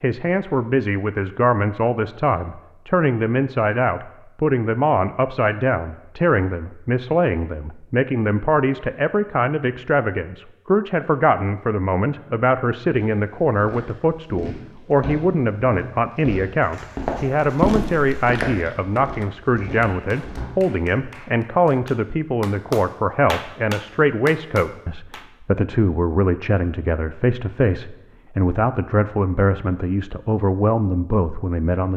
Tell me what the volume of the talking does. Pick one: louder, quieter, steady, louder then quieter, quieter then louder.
steady.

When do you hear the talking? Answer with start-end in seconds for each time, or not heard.
0.0-31.9.